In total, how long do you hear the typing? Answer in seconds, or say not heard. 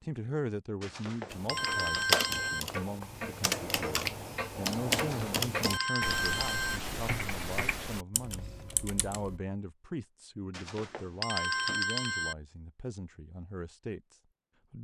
8 s.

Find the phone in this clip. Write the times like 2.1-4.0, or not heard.
0.8-2.6, 5.0-6.8, 10.5-12.3.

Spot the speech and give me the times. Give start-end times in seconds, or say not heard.
0.0-14.7.